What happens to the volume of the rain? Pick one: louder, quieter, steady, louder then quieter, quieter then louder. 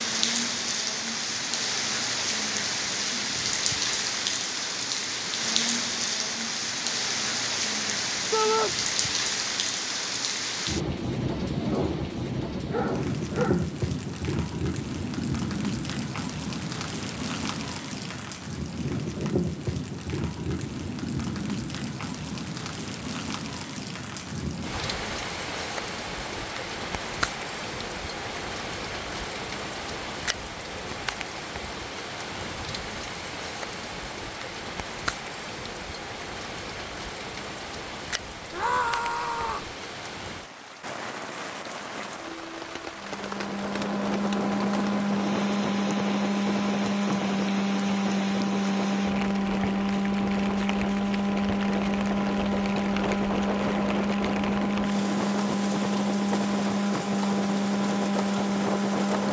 quieter.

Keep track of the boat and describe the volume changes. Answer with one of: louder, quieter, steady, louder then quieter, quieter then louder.
steady.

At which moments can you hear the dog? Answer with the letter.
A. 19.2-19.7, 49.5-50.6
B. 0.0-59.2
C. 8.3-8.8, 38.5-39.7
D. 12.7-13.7
D.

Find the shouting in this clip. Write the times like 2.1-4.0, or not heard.
8.3-8.8, 38.5-39.7.